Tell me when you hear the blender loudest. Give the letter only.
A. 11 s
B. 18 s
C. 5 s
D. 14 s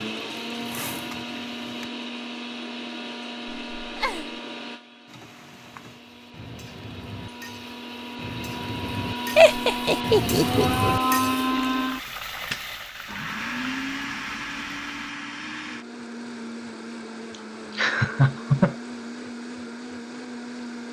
A.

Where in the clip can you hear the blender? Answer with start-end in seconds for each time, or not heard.
0.0-20.8.